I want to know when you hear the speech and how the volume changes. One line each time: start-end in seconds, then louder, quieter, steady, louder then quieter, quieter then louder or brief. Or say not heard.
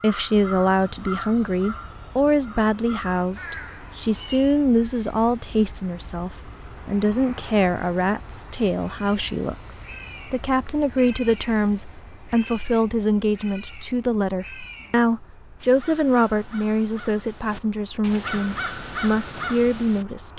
0.0-20.3 steady.